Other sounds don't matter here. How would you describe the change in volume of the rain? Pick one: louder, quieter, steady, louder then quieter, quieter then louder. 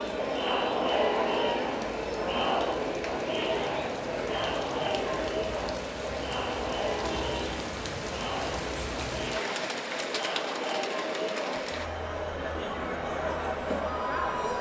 louder.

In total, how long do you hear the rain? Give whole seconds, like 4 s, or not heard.
12 s.